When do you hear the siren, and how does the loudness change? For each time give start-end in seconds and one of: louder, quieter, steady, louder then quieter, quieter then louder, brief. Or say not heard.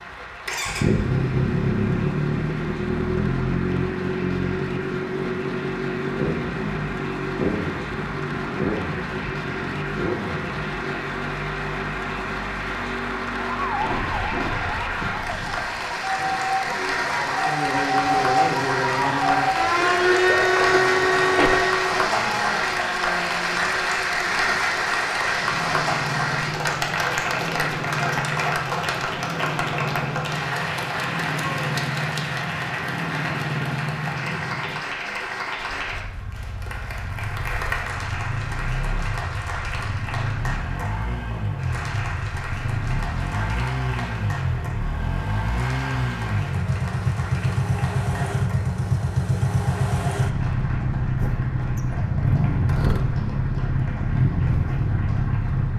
13.6-22.1 louder.